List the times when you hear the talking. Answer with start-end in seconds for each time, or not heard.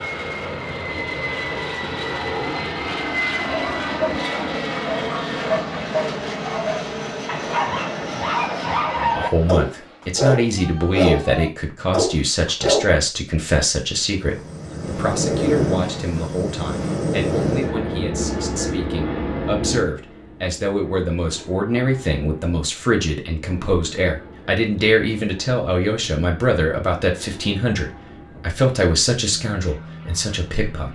8.9-30.9.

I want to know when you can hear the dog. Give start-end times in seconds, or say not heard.
3.4-12.8.